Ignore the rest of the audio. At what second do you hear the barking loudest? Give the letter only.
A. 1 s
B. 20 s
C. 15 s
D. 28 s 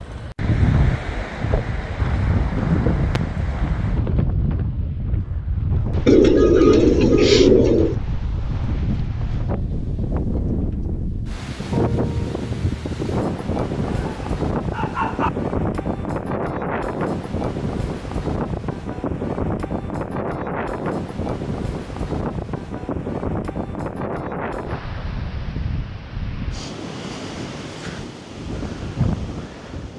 C.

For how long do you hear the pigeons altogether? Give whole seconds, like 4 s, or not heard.
2 s.